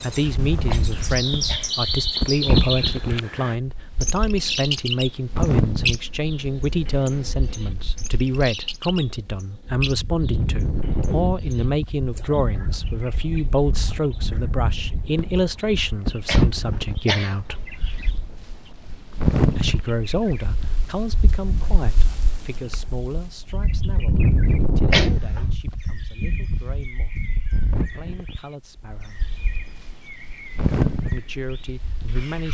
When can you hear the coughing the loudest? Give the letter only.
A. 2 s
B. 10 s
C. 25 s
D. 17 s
C.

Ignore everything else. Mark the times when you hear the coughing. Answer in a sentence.
The coughing can be heard from 0.7 to 1.8 s, from 16.2 to 18.1 s and from 24.9 to 25.5 s.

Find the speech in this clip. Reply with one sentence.
You can hear the speech from 0.0 to 17.6 s, from 19.6 to 29.2 s and from 31.1 to 32.4 s.